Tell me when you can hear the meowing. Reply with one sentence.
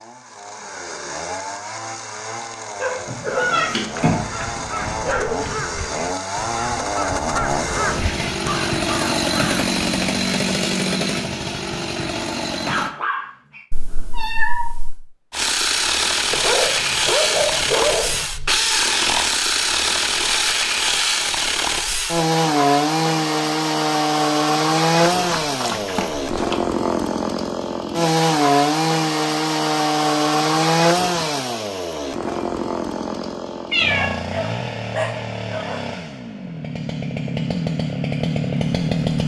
You can hear the meowing from 3.0 to 5.0 s, from 13.7 to 15.0 s and from 33.7 to 34.1 s.